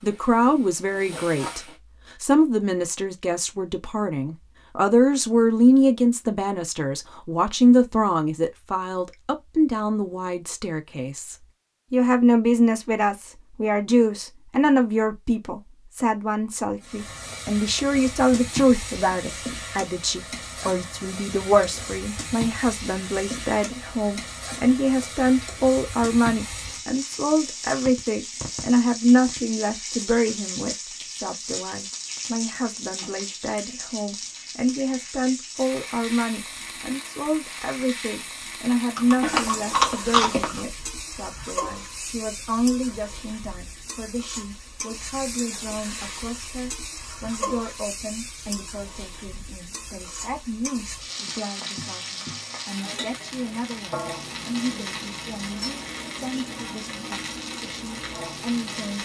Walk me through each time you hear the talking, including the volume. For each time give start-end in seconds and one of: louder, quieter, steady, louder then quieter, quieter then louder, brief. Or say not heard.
0.0-59.0 quieter.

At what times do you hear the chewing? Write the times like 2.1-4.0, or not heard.
39.0-40.6.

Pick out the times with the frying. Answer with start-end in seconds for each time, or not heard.
0.0-1.8, 16.8-59.0.